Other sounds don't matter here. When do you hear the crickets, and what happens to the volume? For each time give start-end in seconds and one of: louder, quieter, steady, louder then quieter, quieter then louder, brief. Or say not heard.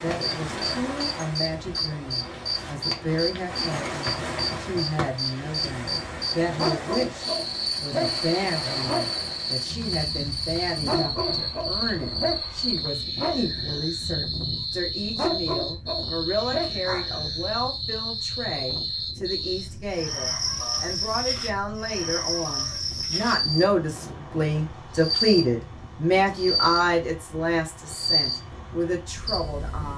0.0-29.9 steady.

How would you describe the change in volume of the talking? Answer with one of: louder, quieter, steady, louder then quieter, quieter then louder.
louder.